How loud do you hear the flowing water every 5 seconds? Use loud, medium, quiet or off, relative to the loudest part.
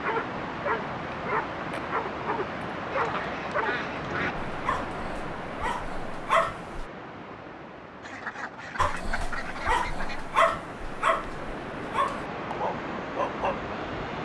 loud, medium, loud.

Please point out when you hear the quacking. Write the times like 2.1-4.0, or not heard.
2.9-4.3, 8.0-10.3.